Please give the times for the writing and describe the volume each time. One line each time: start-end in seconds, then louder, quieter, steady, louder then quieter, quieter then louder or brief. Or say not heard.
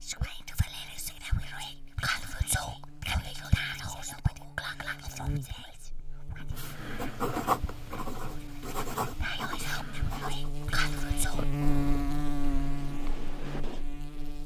6.5-13.8 quieter.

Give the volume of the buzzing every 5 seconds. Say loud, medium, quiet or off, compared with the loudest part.
quiet, medium, loud.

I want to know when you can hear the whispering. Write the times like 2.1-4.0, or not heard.
0.0-11.4.